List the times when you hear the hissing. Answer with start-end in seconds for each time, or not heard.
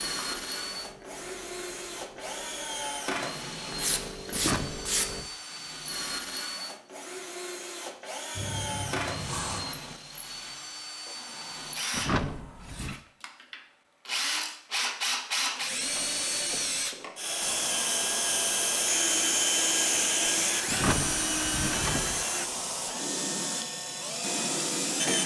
0.0-5.2, 8.3-12.8, 17.4-25.2.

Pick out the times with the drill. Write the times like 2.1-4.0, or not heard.
0.0-25.2.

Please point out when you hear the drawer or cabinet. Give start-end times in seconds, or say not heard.
4.3-5.3, 11.9-13.0, 20.6-22.2.